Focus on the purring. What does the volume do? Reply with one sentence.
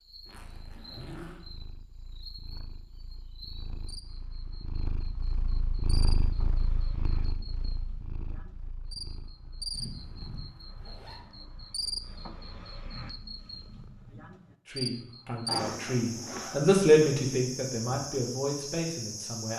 The loudness of the purring goes up, then down.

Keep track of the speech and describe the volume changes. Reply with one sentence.
The volume of the speech goes up, then down.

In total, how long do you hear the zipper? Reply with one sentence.
The zipper can be heard for 4 seconds in total.